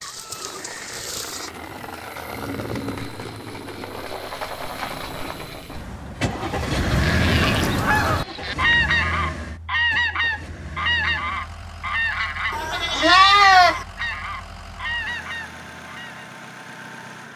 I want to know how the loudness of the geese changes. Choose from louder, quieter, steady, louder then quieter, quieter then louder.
quieter.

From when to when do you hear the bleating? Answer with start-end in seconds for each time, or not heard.
0.0-1.5, 6.8-8.6, 12.5-13.8.